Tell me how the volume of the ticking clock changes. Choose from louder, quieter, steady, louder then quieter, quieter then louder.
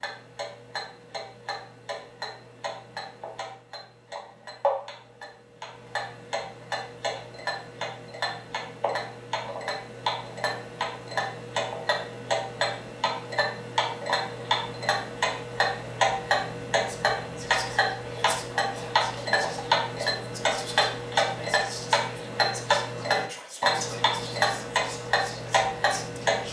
louder.